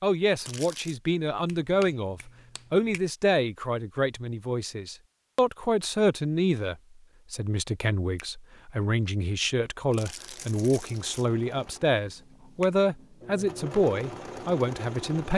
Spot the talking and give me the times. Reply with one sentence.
You can hear the talking from 0.0 to 15.3 s.